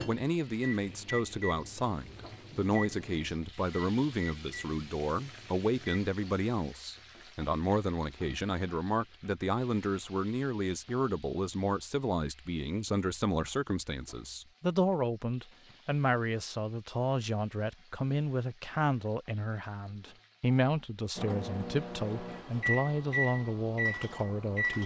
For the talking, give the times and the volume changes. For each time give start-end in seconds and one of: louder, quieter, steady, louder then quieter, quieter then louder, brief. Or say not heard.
0.1-24.8 steady.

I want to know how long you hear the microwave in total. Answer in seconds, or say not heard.
10 s.